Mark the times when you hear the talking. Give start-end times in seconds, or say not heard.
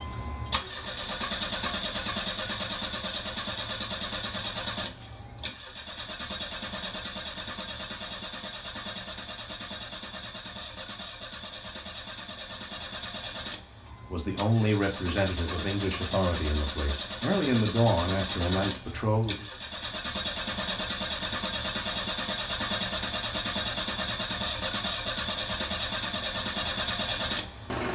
14.1-19.4.